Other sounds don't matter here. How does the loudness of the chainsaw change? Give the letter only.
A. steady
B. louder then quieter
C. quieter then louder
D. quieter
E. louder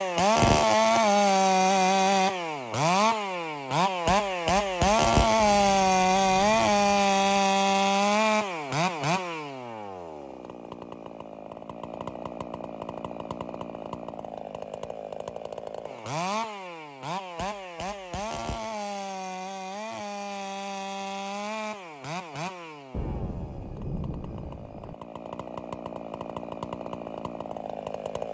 D.